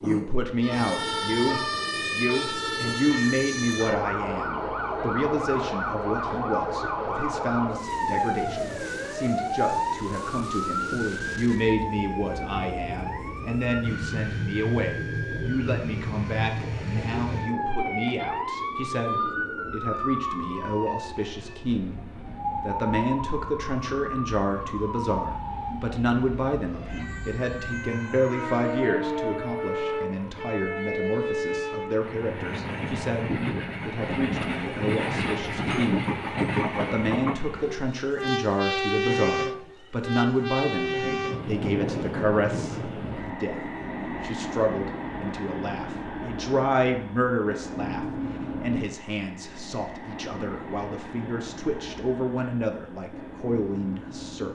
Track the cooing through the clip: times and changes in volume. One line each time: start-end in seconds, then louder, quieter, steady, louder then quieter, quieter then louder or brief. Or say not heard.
not heard.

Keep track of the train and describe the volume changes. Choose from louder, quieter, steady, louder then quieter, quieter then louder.
louder then quieter.